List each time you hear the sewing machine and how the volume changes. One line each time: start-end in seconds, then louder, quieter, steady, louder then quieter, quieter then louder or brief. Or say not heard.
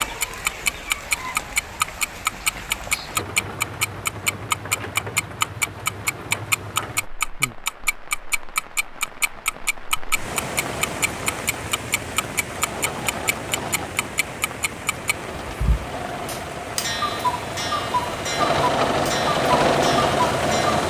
10.2-20.8 louder.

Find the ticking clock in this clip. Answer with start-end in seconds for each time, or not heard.
0.0-20.8.